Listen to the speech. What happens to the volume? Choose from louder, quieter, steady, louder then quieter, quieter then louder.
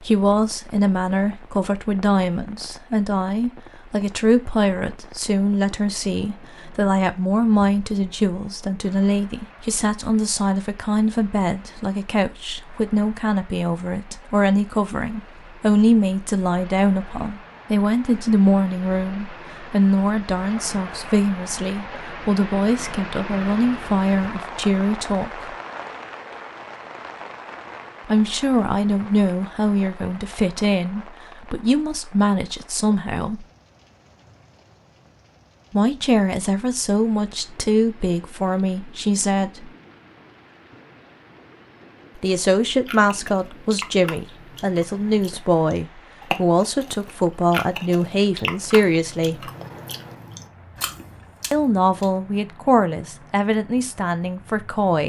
steady.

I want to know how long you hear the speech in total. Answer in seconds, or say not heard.
46 s.